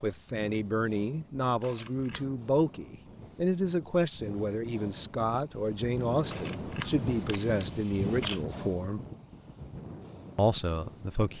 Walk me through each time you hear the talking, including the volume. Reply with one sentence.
The talking can be heard from 0.0 to 9.0 s, at a steady volume; and briefly from 10.3 to 11.3 s.